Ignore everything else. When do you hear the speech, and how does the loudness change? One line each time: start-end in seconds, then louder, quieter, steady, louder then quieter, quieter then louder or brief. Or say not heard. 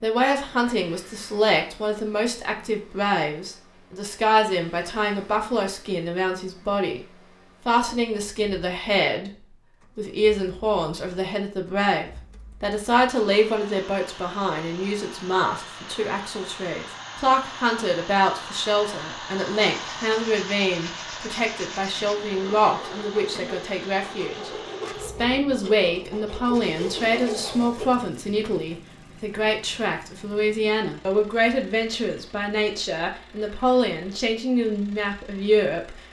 0.0-36.0 steady.